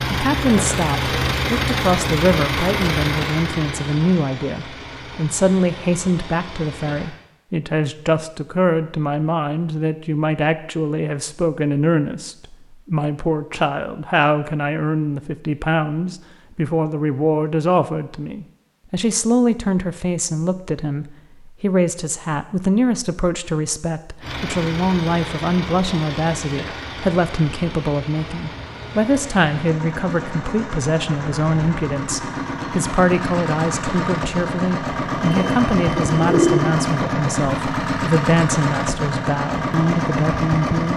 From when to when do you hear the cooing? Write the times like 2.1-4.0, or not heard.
35.2-37.0.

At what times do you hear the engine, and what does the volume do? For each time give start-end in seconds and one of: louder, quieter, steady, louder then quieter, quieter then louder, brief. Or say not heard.
0.0-7.2 quieter
24.2-40.9 louder.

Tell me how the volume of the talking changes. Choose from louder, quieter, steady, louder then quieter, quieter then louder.
steady.